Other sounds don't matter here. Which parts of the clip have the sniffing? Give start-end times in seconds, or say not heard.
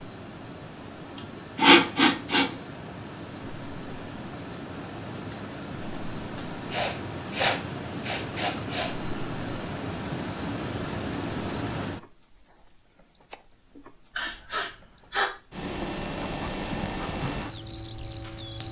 1.6-2.5, 6.7-8.9, 14.2-15.3.